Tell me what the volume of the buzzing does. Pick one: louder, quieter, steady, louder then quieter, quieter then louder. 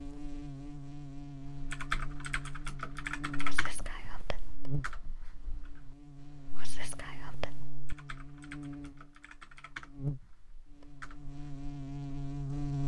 quieter then louder.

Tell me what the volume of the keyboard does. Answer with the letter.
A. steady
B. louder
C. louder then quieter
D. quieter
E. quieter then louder
E.